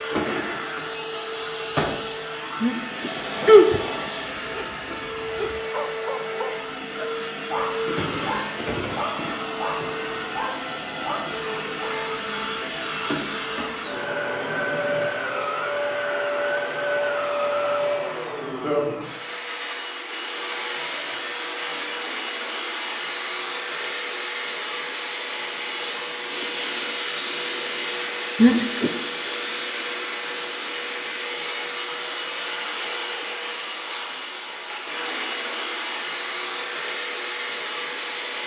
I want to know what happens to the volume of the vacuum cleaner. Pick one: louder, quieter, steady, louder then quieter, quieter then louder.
steady.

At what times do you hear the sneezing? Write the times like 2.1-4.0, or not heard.
2.6-3.8, 28.4-28.9.